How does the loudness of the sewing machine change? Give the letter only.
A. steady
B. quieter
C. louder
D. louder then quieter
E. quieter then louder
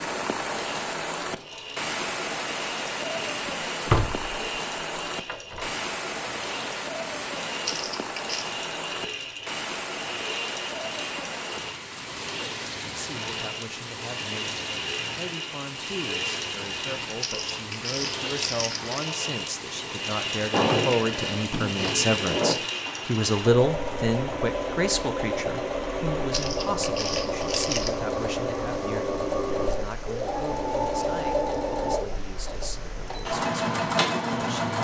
C.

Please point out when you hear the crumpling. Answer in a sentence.
The crumpling can be heard from 7.7 to 8.4 s, from 17.2 to 19.2 s and from 26.3 to 27.9 s.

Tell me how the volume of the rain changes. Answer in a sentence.
The volume of the rain goes down.